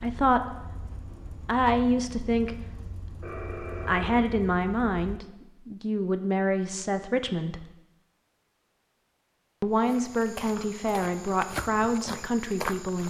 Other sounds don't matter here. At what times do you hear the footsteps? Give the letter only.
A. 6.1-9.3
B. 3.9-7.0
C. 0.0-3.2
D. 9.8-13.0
D.